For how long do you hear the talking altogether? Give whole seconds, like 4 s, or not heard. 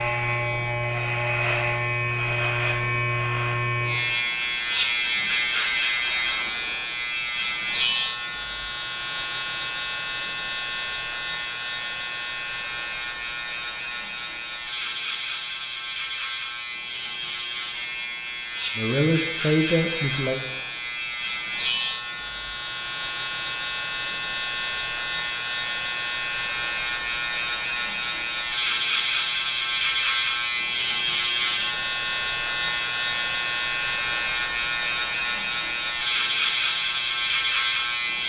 2 s.